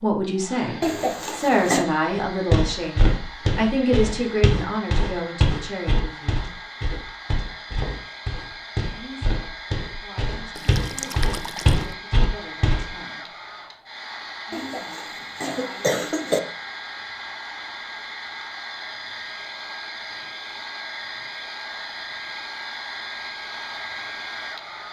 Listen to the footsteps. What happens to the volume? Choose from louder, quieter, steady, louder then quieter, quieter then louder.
quieter then louder.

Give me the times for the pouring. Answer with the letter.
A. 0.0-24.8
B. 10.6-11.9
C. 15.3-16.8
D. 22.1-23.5
B.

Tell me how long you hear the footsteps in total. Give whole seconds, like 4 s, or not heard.
11 s.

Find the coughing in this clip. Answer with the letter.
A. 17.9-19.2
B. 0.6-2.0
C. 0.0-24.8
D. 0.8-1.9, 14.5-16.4
D.